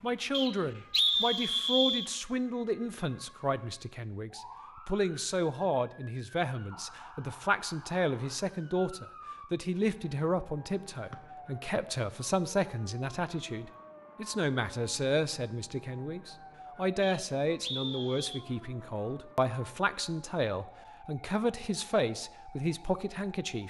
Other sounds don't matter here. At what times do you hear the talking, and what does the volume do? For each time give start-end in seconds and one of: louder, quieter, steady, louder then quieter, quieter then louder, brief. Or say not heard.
0.0-23.6 steady.